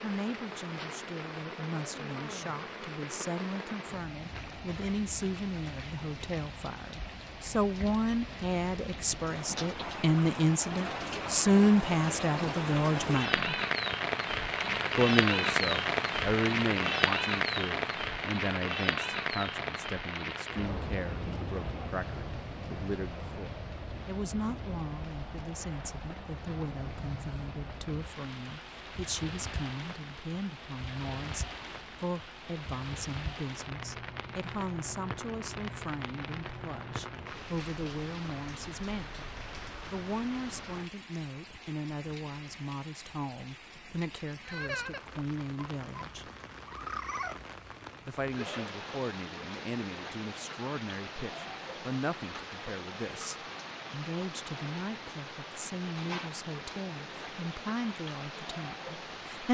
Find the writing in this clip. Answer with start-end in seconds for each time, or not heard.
not heard.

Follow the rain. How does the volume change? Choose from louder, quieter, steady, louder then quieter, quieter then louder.
louder then quieter.